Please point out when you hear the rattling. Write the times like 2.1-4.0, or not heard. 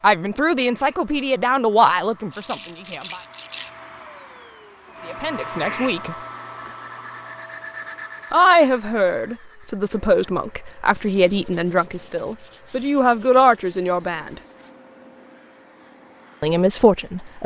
2.3-3.8.